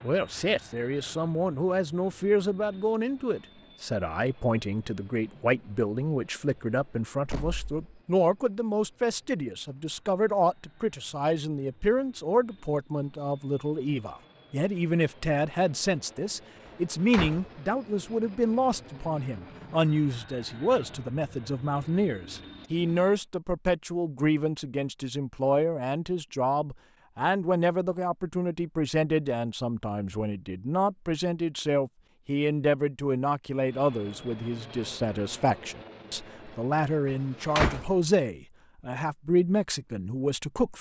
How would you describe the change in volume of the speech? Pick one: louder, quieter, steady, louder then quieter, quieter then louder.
steady.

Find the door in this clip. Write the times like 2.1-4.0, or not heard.
7.2-7.8, 16.6-17.6, 37.1-38.0.